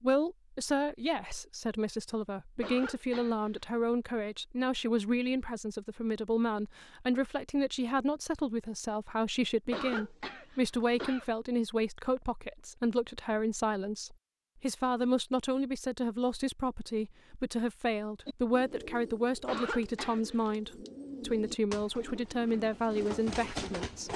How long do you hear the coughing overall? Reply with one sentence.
You can hear the coughing for 4 seconds altogether.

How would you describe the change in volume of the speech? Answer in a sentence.
The loudness of the speech stays about the same.